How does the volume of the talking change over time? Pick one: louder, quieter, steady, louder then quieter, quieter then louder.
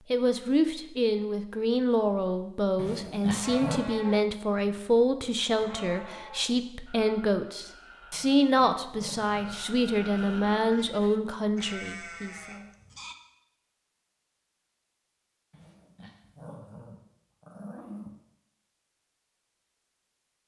steady.